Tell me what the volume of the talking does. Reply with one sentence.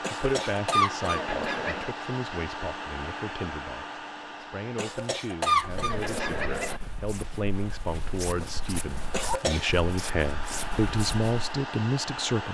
The volume of the talking goes up.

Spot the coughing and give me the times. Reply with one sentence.
You can hear the coughing from 0.0 to 1.9 s, from 4.8 to 6.8 s and from 9.1 to 9.8 s.